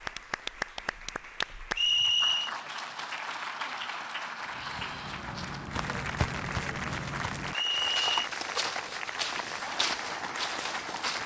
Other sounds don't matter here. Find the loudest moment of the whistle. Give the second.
2 s.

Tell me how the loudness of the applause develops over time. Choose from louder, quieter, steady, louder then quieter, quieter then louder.
steady.